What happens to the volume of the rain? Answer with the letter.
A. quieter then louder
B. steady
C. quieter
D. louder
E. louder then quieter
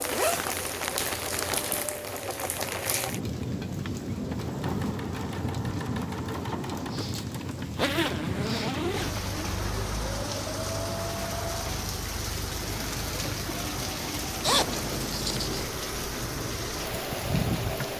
B.